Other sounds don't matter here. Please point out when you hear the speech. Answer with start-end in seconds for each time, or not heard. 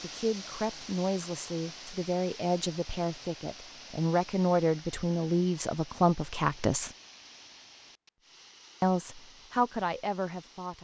0.0-6.9, 8.8-10.8.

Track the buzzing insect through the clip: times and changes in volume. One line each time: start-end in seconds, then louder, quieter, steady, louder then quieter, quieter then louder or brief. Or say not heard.
not heard.